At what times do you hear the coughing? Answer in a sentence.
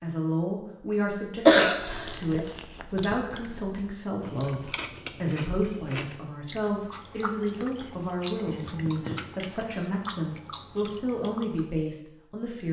The coughing can be heard from 1.4 to 2.5 s and from 8.7 to 9.3 s.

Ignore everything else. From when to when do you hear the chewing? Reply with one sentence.
The chewing can be heard from 1.9 to 11.8 s.